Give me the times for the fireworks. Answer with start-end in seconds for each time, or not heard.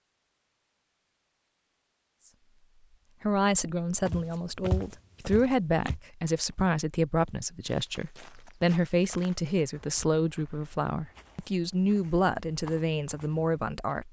not heard.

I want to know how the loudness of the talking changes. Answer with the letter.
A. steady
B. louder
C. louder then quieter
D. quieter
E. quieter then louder
A.